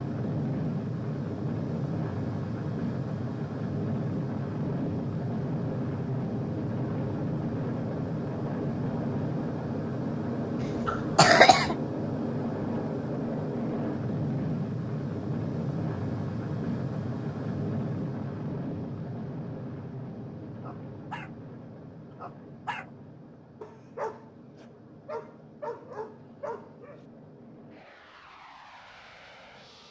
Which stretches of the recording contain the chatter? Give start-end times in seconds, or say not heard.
not heard.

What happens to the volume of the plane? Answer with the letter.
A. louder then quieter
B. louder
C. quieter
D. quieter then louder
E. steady
C.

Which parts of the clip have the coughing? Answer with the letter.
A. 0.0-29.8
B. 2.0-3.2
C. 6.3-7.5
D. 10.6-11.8
D.